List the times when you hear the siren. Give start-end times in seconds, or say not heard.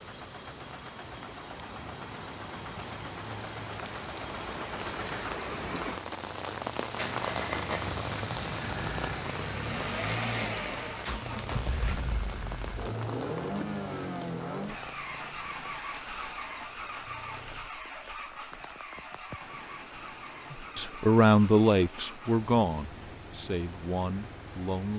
not heard.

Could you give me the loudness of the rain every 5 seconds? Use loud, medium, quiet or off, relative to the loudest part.
medium, loud, medium, quiet, quiet.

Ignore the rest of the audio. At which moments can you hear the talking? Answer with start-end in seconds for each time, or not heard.
20.5-24.9.